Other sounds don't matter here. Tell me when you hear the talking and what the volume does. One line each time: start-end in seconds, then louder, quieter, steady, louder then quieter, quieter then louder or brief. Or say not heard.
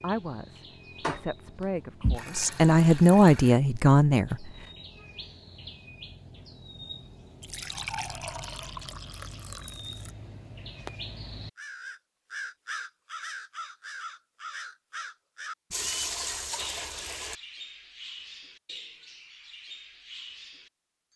0.0-4.3 louder.